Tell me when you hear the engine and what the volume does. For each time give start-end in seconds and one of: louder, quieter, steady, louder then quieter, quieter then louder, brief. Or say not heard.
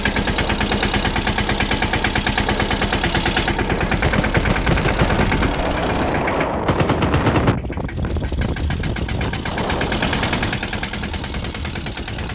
0.0-6.5 steady
7.5-12.3 louder then quieter.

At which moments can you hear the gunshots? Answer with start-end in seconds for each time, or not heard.
4.0-7.5.